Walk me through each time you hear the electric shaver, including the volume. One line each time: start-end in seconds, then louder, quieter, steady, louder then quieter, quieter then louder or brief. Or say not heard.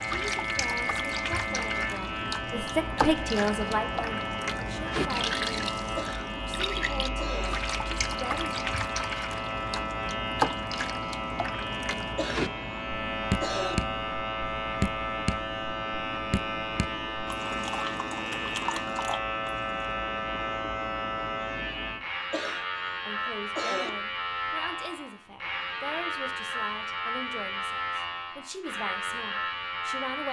0.0-30.2 steady.